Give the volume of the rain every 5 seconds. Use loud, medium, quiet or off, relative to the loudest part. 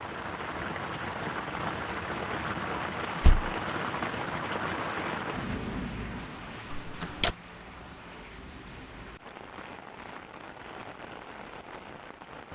loud, medium, medium.